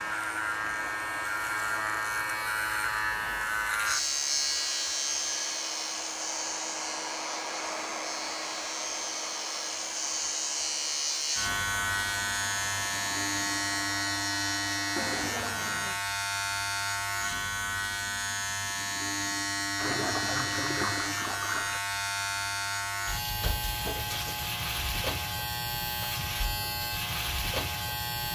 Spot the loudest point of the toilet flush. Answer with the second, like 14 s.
20 s.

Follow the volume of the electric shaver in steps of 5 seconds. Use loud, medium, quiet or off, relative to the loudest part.
loud, medium, loud, loud, loud, loud.